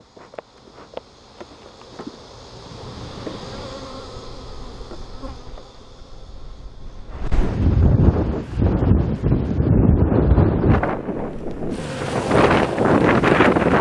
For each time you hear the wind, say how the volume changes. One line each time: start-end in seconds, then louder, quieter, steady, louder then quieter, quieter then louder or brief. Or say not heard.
2.5-13.7 quieter then louder.